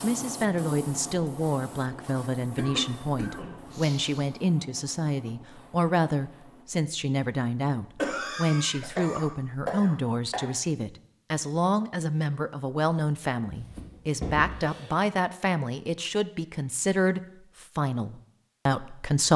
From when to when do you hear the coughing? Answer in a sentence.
The coughing can be heard from 2.5 to 4.3 s, from 8.0 to 10.4 s and from 13.6 to 14.9 s.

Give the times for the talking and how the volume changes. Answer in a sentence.
You can hear the talking from 0.0 to 19.3 s, at a steady volume.